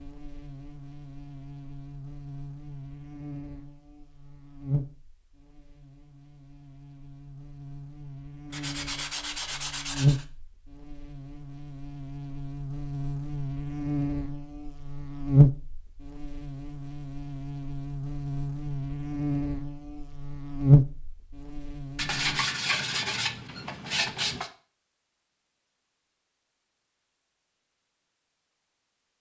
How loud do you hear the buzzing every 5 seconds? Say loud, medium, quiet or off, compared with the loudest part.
quiet, quiet, medium, loud, loud, off.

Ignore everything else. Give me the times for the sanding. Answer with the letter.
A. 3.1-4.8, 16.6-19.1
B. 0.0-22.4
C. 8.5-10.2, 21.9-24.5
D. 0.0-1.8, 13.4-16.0
C.